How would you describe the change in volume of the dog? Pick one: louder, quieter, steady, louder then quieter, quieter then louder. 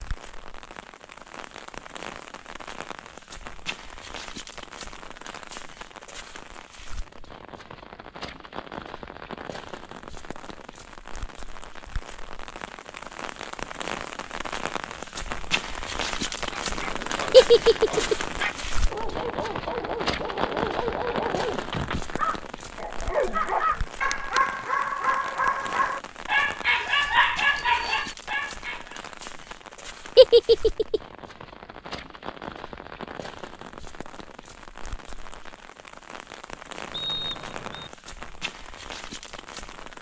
louder.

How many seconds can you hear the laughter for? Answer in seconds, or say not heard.
2 s.